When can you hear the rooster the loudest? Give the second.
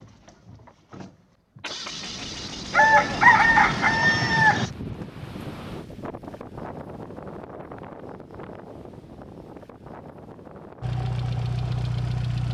3 s.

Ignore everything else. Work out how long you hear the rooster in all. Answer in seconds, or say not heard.
2 s.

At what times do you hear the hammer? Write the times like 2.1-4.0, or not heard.
not heard.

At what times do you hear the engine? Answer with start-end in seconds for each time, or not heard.
0.0-4.8, 10.8-12.4.